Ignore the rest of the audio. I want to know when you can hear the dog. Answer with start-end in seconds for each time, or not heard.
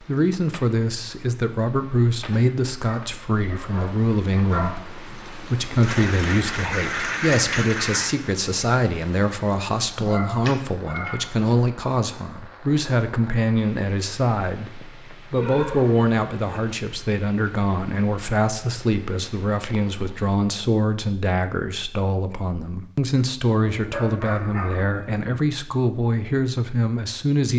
2.9-4.8, 9.9-11.5, 15.3-16.6, 23.7-25.2.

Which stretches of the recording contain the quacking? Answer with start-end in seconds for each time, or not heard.
5.8-8.2.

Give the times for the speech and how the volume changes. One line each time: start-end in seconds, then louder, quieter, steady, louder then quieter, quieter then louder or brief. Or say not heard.
0.0-27.5 steady.